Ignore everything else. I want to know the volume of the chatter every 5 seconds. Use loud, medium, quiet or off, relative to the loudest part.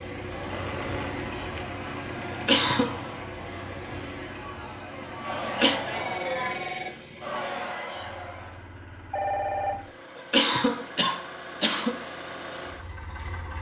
medium, loud, off.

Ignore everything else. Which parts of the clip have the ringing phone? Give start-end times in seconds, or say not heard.
0.5-1.8, 5.9-7.0, 9.1-9.8.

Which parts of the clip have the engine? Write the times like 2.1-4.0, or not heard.
0.0-13.5.